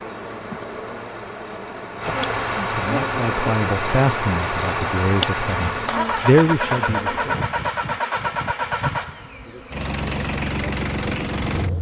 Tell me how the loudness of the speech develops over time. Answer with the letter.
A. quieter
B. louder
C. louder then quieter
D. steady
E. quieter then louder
E.